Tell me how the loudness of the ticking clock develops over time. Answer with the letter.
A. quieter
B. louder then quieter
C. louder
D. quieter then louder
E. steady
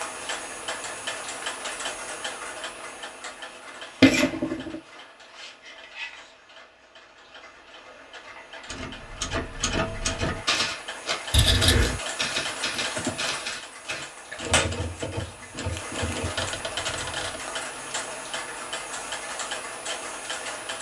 D.